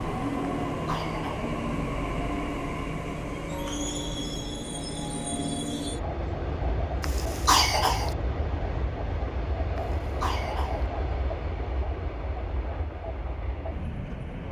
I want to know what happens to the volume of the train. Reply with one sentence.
The loudness of the train goes down.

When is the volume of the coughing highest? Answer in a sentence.
The loudest moment of the coughing is at 8 seconds.